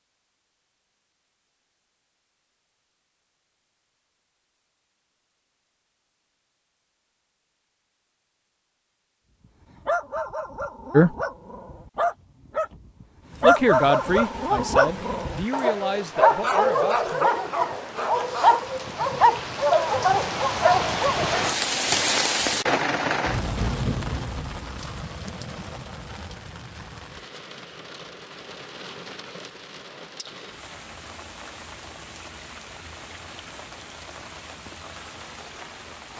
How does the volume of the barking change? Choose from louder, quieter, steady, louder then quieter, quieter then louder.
louder.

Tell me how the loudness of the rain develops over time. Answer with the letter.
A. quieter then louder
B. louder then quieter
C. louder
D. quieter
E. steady
B.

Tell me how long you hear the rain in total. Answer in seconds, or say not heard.
23 s.